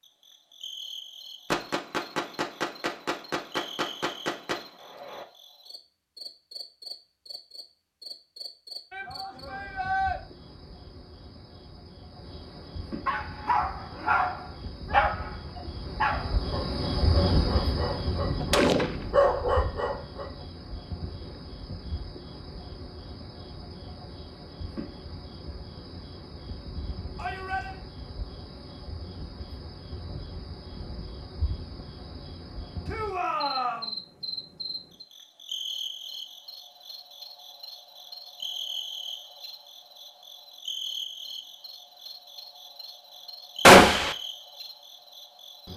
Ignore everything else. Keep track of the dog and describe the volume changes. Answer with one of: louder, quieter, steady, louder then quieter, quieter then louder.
quieter then louder.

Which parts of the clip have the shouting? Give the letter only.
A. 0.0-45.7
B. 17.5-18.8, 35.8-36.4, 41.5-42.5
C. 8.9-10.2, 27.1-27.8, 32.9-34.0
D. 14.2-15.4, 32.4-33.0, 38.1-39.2
C.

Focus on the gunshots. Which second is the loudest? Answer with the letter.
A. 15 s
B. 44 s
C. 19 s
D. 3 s
B.